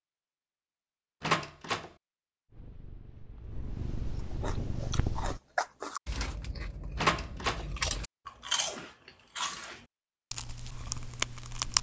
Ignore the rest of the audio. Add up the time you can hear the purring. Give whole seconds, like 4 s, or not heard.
3 s.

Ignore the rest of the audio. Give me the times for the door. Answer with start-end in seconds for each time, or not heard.
1.2-1.9, 7.0-7.7.